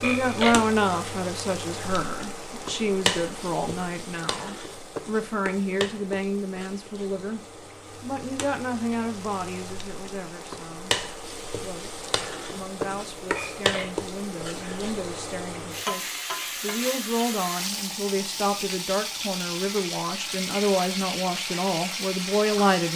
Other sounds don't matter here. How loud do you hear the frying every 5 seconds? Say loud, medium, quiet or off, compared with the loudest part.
loud, medium, loud, loud, loud.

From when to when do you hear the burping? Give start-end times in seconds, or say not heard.
0.0-0.6, 13.3-14.8.